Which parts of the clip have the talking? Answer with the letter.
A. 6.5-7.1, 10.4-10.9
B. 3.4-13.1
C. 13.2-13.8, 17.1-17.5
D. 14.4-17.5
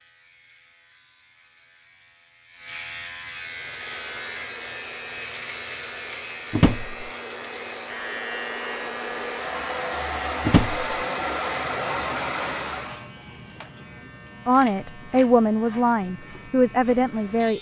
D.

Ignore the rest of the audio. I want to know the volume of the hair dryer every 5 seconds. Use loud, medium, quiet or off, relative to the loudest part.
quiet, medium, loud, off.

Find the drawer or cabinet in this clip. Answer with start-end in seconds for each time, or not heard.
6.5-7.1, 10.4-10.9.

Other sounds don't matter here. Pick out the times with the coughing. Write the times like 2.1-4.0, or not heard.
not heard.